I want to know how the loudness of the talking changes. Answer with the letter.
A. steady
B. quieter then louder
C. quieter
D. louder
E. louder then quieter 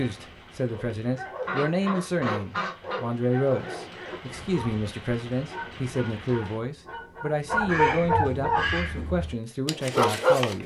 A.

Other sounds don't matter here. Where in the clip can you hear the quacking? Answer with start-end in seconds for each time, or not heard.
1.4-3.0, 7.7-9.2.